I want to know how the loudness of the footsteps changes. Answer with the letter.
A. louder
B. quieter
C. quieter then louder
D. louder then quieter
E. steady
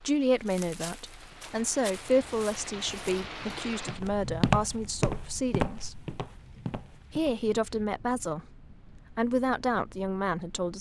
D.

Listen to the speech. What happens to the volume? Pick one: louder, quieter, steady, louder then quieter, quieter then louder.
steady.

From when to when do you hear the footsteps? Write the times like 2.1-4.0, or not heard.
0.4-7.4.